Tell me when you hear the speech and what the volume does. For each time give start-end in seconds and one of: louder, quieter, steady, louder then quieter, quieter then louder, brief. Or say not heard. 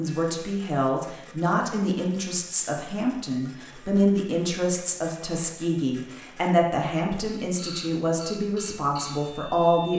0.0-9.9 steady.